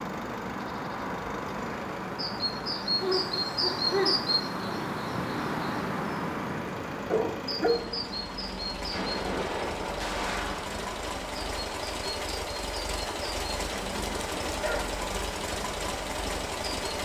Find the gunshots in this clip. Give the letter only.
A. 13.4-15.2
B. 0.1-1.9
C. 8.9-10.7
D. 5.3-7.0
C.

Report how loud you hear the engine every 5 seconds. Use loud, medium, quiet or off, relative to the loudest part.
medium, medium, loud, loud.